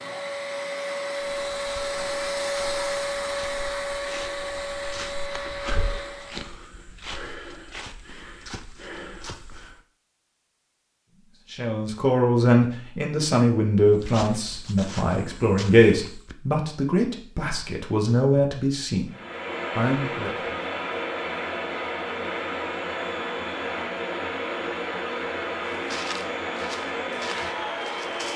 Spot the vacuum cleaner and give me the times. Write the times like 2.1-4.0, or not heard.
0.0-6.5, 19.1-28.3.